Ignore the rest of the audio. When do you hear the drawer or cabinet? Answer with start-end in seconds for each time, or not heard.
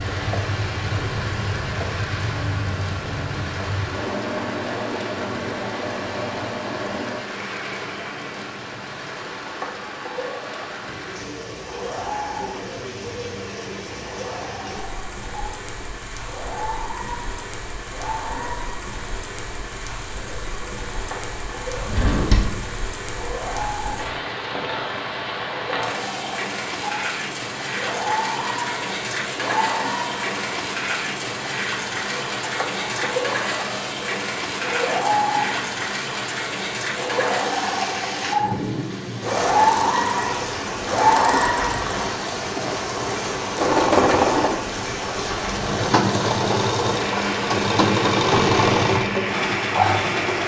21.8-22.8.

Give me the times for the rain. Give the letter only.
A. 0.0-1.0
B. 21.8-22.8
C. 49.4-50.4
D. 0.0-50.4
D.